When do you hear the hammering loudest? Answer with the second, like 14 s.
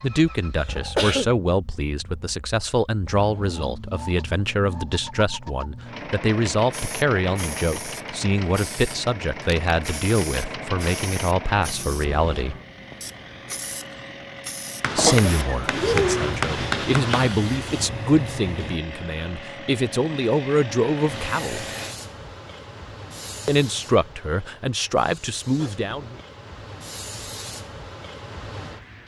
17 s.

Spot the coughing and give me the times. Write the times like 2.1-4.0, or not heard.
0.6-1.3, 14.9-16.3, 25.6-26.2.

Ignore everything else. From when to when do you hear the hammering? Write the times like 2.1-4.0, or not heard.
14.8-17.4.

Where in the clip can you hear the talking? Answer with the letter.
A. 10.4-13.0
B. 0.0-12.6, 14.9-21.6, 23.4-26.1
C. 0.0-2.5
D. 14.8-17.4
B.